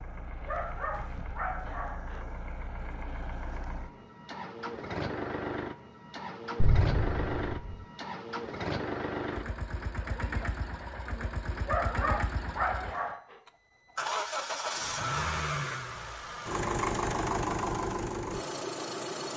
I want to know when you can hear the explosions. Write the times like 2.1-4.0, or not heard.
6.6-7.8.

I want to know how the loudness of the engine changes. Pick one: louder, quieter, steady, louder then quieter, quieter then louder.
louder.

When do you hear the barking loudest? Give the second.
12 s.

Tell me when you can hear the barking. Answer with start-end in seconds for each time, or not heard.
0.5-2.2, 11.7-13.3.